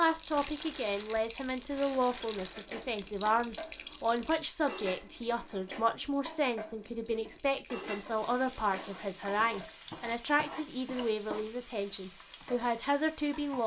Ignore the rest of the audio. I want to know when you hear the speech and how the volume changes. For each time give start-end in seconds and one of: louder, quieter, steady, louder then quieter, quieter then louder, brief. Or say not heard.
0.0-13.6 steady.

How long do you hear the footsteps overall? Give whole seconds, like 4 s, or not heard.
not heard.